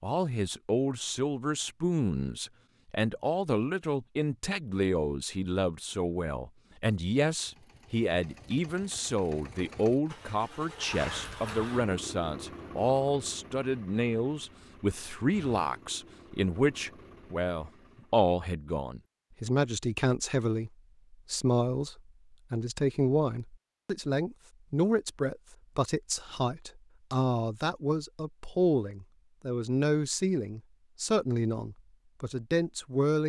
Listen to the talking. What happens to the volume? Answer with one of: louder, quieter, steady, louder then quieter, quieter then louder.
steady.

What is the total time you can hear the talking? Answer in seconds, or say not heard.
33 s.